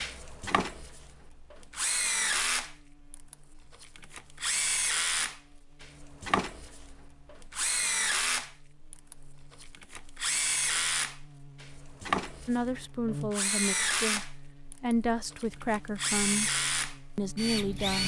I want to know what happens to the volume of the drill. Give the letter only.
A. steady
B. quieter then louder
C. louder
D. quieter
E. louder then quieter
A.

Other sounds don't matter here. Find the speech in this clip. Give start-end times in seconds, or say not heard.
12.4-18.0.